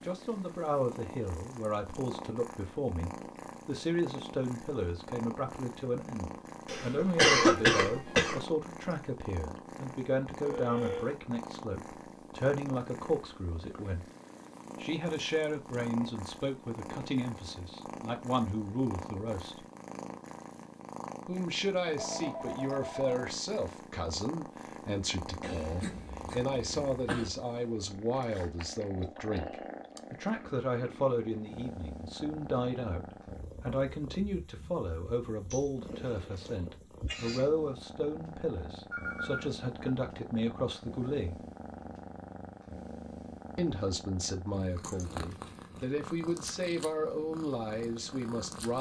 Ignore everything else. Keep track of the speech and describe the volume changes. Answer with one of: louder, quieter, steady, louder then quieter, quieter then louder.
steady.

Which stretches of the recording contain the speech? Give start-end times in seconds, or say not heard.
0.0-14.1, 14.8-19.6, 21.2-41.5, 43.5-48.7.